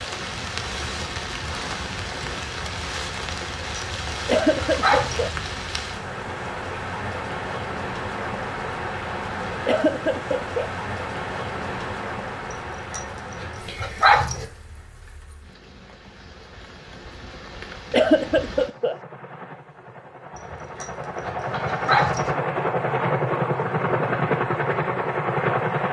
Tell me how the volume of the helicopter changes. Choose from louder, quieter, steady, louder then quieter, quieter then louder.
louder.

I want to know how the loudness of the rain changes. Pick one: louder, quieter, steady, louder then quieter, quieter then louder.
quieter.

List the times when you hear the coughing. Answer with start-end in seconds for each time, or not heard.
4.2-5.3, 9.7-10.7, 17.9-18.9.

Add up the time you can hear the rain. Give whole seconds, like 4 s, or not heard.
19 s.